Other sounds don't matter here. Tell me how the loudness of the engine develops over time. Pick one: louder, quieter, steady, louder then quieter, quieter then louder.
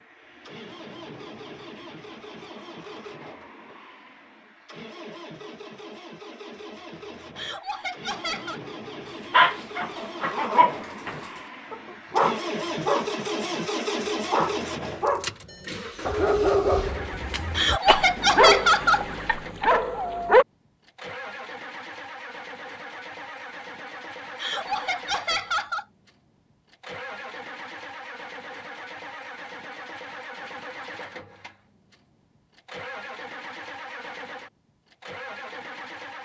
louder then quieter.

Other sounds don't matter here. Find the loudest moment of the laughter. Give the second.
19 s.